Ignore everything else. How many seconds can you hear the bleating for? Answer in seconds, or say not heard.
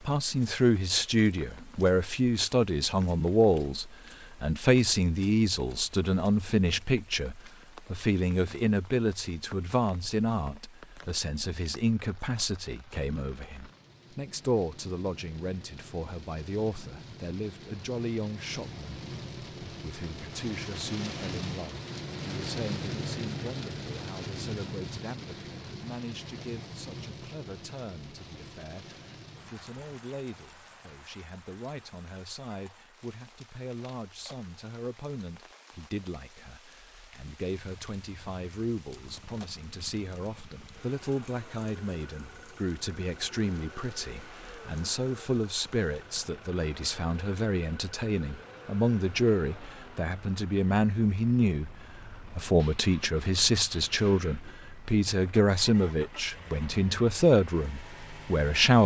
not heard.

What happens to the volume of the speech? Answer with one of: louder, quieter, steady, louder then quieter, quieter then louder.
quieter then louder.